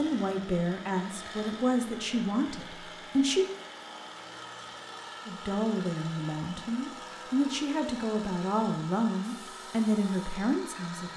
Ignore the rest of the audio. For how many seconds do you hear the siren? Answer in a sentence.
The siren can't be heard in this clip.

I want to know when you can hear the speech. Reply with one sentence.
The speech can be heard from 0.0 to 3.5 s and from 5.2 to 11.1 s.